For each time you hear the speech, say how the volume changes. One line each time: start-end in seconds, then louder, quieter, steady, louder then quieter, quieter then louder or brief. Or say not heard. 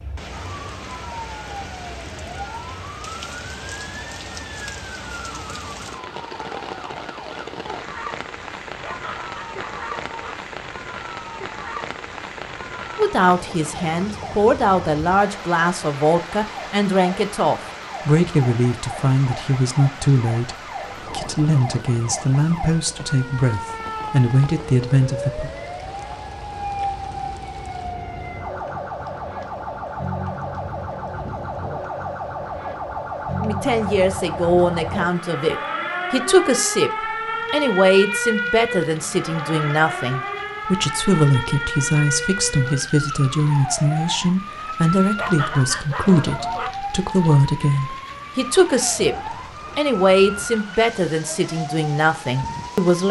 12.9-25.5 steady
33.4-53.0 steady.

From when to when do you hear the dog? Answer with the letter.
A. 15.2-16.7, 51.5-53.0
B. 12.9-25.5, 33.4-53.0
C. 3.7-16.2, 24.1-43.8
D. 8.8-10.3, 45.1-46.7
D.